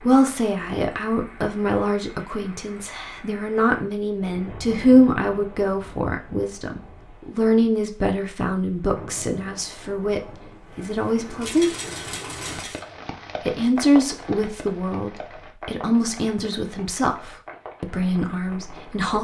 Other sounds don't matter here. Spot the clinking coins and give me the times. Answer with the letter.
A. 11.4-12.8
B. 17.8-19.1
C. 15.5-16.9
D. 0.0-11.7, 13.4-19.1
A.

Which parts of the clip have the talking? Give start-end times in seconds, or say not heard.
0.0-11.7, 13.4-19.1.